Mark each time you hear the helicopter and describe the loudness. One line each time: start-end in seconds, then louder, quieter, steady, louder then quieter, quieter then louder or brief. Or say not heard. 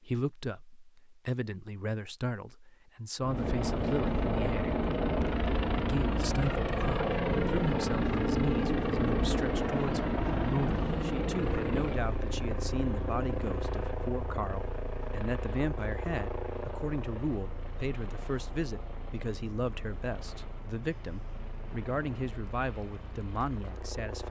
3.2-24.2 quieter.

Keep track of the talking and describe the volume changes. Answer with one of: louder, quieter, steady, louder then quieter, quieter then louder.
steady.